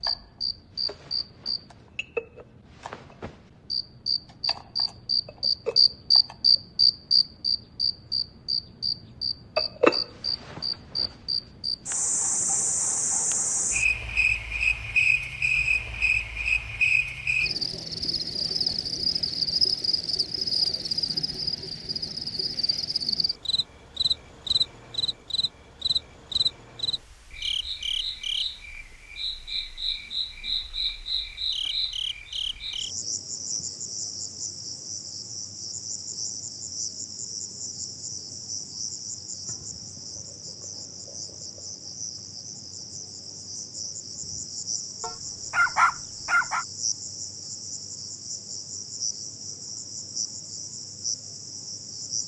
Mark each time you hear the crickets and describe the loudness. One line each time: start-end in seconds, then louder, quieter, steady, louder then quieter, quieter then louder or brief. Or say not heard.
0.0-52.2 quieter.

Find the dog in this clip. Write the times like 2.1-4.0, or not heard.
45.0-46.6.